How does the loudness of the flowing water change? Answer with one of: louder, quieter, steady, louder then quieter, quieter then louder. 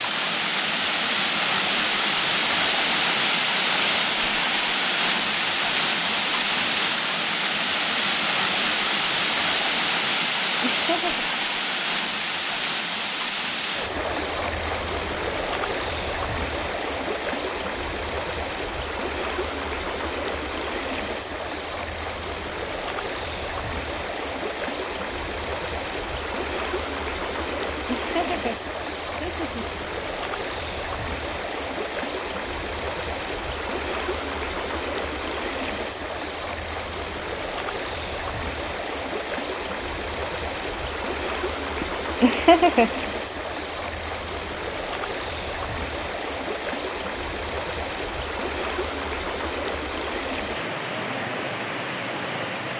quieter.